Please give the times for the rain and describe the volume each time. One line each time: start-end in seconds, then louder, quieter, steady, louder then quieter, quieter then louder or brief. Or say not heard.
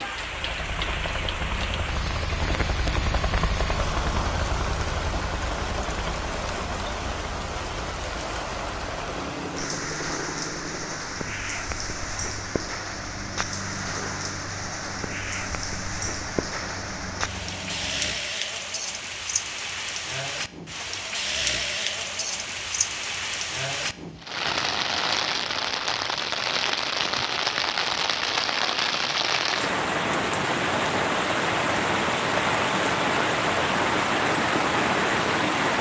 0.0-35.7 louder.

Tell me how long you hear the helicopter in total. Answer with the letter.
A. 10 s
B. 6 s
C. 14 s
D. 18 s
D.